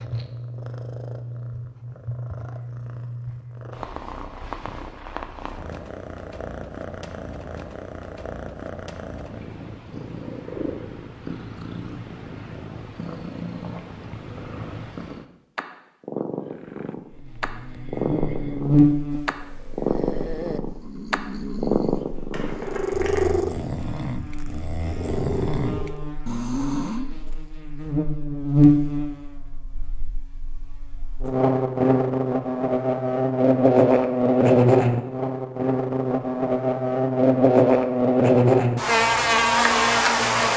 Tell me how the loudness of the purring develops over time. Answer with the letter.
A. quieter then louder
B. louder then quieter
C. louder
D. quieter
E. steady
C.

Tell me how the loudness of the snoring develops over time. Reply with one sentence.
The loudness of the snoring goes up.